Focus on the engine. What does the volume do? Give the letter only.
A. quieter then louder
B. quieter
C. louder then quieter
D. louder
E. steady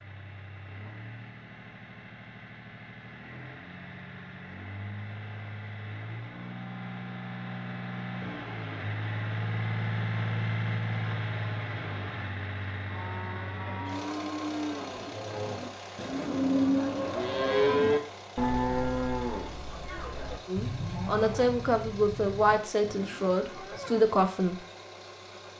C.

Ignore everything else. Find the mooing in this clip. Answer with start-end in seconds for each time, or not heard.
12.8-24.0.